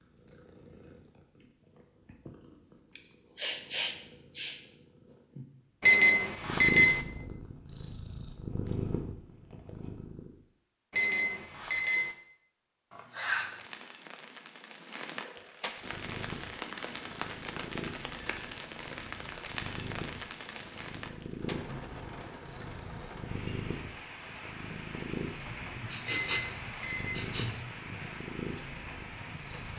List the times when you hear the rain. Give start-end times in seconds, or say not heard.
13.3-29.7.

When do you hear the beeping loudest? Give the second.
7 s.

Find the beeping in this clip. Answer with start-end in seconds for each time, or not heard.
5.8-7.0, 10.9-12.1, 26.1-27.1.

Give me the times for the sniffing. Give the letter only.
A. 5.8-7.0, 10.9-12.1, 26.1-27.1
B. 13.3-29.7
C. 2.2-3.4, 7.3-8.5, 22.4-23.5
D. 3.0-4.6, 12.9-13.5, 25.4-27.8
D.